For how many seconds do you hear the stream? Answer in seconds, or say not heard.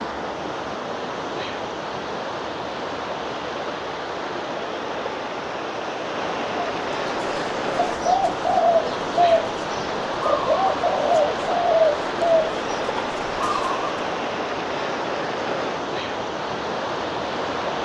18 s.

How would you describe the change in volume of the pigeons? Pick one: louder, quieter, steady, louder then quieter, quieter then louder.
quieter.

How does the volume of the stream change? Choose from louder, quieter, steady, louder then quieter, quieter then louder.
steady.